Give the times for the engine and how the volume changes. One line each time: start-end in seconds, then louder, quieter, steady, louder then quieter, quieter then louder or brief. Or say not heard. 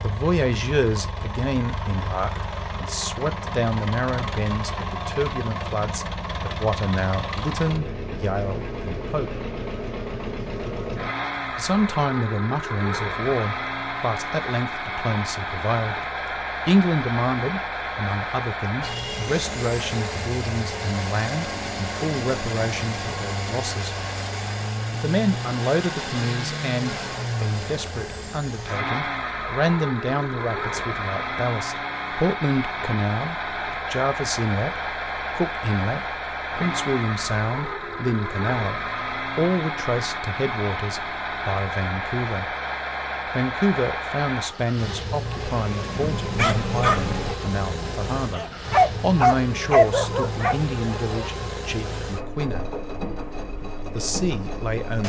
0.0-55.0 steady.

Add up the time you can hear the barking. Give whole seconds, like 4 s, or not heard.
5 s.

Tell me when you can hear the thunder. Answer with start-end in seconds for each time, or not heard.
45.4-47.4.